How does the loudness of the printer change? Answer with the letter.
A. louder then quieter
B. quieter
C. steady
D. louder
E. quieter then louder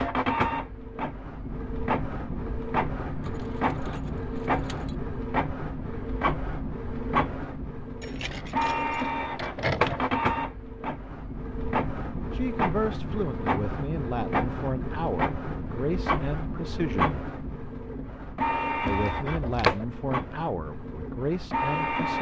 C.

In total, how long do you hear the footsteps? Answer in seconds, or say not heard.
not heard.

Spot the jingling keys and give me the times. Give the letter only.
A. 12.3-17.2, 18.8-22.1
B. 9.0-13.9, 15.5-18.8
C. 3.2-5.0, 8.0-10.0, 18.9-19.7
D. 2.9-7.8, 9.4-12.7
C.